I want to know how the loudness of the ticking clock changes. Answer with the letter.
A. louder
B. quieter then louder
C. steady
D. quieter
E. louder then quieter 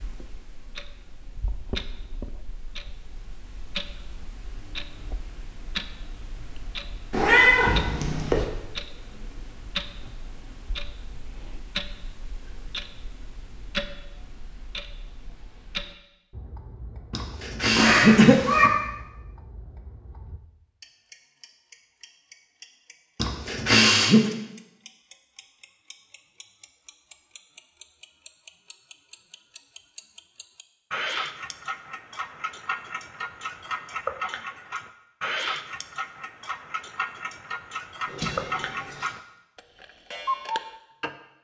A.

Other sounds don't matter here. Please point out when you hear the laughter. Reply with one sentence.
The laughter can be heard from 17.1 to 18.4 s and from 23.2 to 24.3 s.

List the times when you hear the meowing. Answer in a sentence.
The meowing can be heard from 7.1 to 8.4 s, from 17.8 to 18.7 s and from 38.0 to 39.0 s.